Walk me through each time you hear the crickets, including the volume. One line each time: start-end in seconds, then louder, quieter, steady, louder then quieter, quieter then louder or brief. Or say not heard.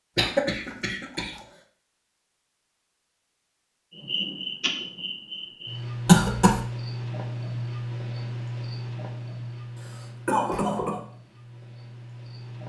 3.9-12.6 quieter.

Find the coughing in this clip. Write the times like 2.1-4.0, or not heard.
0.1-1.3, 6.0-6.6, 9.8-11.0.